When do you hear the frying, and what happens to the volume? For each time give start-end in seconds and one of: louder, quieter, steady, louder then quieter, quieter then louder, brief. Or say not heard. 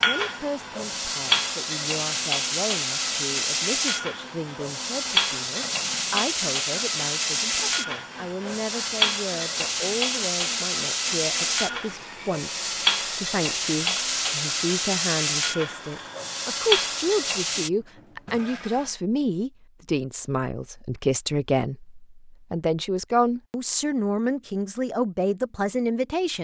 0.0-17.7 steady.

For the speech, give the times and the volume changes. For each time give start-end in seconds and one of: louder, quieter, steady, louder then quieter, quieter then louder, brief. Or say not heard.
0.0-26.3 louder.